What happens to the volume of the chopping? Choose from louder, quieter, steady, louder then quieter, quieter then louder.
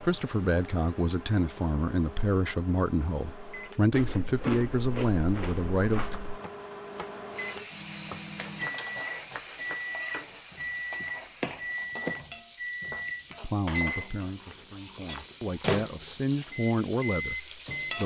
louder.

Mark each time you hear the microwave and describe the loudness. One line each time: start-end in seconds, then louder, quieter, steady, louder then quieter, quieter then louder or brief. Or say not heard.
0.0-18.0 louder.